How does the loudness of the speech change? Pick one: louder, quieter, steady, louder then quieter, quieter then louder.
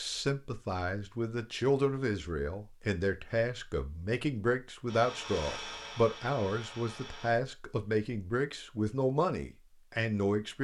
steady.